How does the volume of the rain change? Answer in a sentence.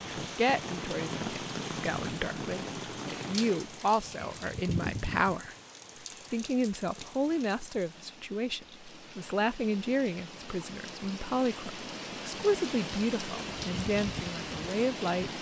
The loudness of the rain goes down, then up.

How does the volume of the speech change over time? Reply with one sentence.
The loudness of the speech stays about the same.